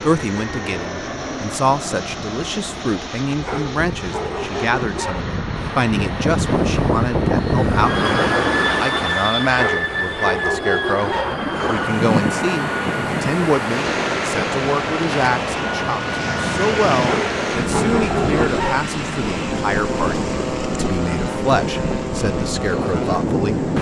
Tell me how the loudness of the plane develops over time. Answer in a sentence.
The loudness of the plane goes up, then down.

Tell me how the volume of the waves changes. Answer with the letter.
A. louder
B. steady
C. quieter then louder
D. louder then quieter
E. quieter
B.